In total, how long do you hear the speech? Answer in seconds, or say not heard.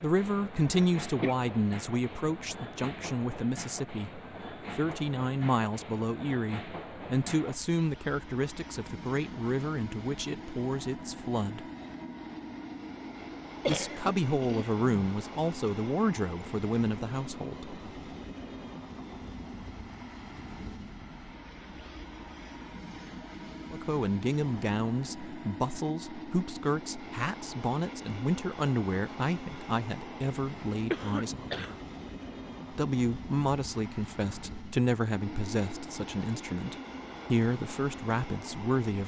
30 s.